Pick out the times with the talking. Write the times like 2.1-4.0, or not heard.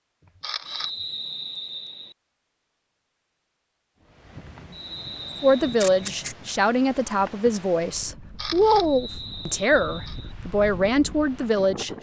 5.4-11.9.